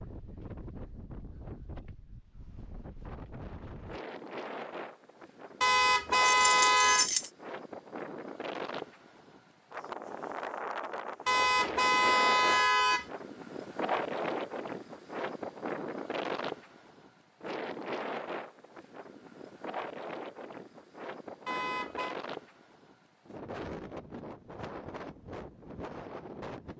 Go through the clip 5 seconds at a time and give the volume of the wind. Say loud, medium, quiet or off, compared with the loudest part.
medium, medium, loud, loud, medium, medium.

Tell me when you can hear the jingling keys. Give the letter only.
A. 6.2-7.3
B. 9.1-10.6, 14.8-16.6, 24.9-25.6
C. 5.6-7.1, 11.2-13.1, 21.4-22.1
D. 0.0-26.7
A.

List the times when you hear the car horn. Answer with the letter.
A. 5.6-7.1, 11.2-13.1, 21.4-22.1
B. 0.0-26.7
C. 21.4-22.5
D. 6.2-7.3
A.